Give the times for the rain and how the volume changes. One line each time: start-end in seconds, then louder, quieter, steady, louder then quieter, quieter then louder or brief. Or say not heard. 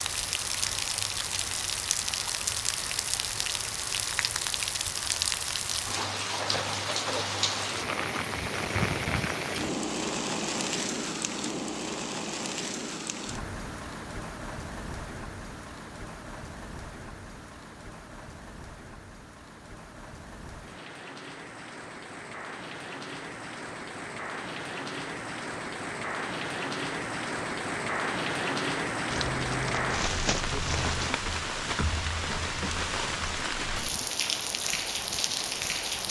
0.0-36.0 quieter then louder.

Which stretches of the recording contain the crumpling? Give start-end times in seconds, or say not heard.
29.1-31.1.